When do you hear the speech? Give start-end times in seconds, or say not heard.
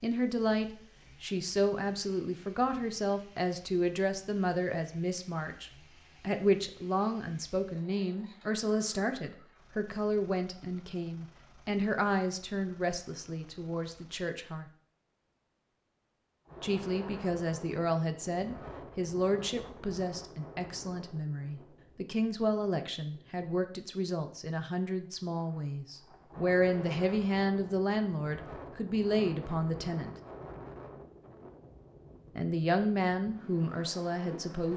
0.0-14.7, 16.6-30.1, 32.4-34.7.